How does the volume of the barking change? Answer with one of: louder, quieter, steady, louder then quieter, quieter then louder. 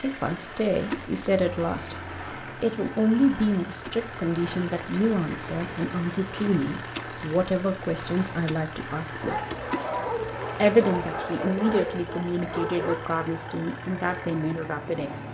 quieter.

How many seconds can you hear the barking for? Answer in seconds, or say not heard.
5 s.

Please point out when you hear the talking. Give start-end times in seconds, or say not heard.
0.0-9.4, 10.6-15.2.